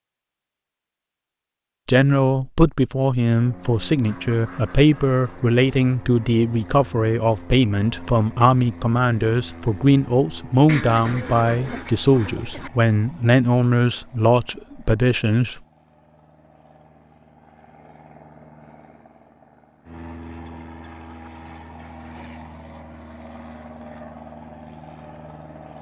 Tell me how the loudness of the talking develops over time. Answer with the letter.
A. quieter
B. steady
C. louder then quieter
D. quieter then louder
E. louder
B.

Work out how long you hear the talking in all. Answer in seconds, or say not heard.
14 s.